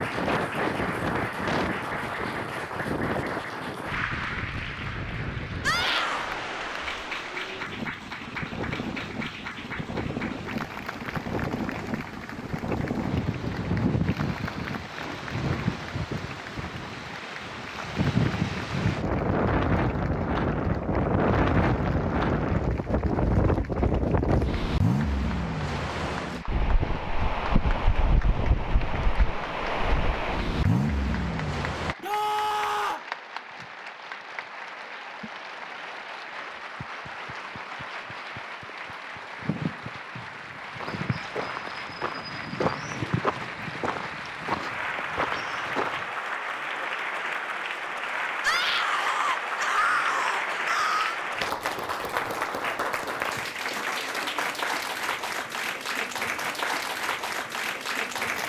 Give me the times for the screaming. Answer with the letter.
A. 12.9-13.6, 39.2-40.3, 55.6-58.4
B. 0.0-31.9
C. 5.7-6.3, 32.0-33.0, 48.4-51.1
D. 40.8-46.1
C.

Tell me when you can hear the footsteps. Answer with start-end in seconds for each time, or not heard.
40.8-46.1.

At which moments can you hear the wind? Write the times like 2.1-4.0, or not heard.
0.0-31.9.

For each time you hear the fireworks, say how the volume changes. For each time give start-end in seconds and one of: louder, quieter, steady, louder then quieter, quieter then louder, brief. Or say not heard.
not heard.